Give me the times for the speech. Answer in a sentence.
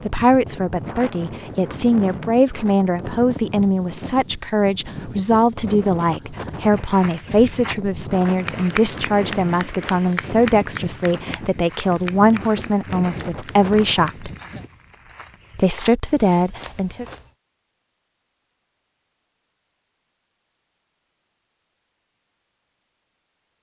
The speech can be heard from 0.1 to 14.3 s and from 15.6 to 17.1 s.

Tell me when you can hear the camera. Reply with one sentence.
You can't hear the camera here.